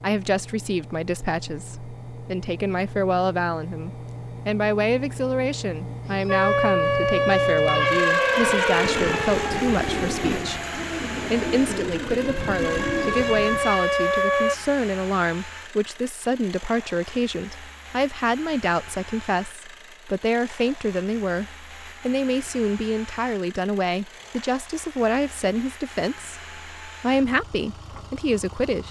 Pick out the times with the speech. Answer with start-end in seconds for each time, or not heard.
0.0-28.8.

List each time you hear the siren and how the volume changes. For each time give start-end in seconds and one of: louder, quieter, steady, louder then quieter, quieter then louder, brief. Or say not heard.
6.2-14.6 quieter then louder.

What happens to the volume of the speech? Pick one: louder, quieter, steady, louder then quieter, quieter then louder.
steady.